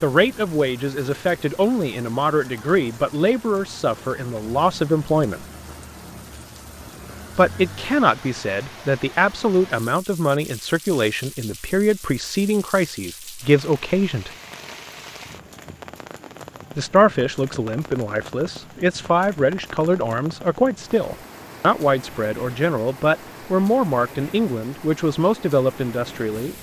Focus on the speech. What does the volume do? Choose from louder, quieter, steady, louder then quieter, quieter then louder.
steady.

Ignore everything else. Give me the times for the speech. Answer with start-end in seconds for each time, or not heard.
0.0-5.5, 7.3-14.3, 16.8-26.5.